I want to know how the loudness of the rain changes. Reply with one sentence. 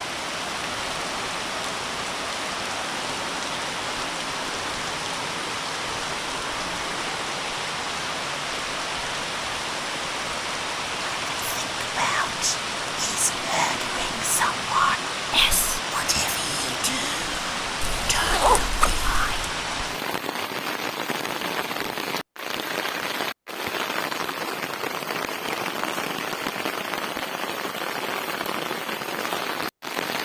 The volume of the rain stays about the same.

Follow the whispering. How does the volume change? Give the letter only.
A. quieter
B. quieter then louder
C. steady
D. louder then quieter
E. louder
D.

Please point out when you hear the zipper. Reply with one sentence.
You can hear the zipper from 17.8 to 19.5 s.